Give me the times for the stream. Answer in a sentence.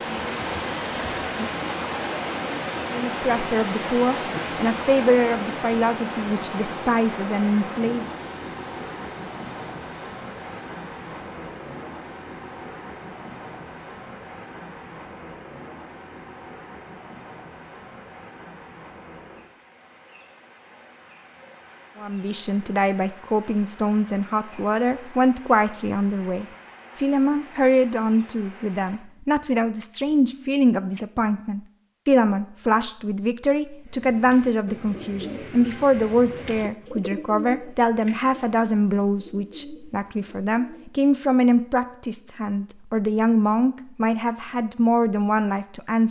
The stream can be heard from 0.0 to 29.0 s.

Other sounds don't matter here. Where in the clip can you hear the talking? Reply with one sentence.
You can hear the talking from 2.9 to 8.1 s and from 21.9 to 46.0 s.